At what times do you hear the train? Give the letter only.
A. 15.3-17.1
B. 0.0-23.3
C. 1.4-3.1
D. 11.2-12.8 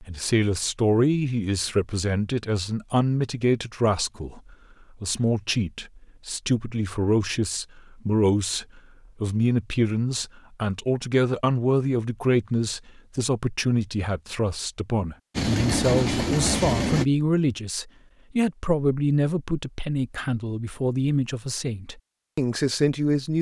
A.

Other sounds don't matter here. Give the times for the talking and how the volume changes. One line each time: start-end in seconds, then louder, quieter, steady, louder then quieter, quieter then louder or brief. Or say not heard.
0.0-23.3 steady.